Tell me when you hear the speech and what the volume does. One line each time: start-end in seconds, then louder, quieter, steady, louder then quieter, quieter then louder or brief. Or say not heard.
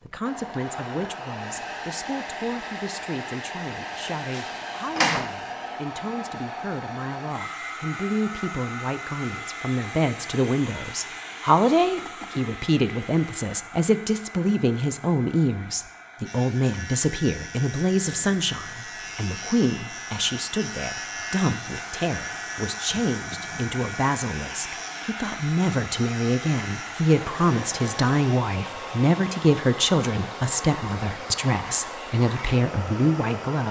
0.1-33.6 louder.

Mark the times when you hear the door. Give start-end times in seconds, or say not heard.
4.2-5.3.